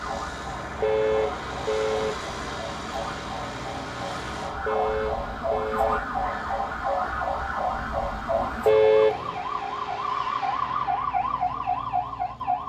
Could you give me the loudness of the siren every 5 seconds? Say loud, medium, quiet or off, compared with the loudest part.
medium, loud, loud.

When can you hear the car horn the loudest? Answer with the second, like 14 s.
9 s.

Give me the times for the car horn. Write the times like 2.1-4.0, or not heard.
0.8-2.1, 4.7-6.0, 8.7-9.3.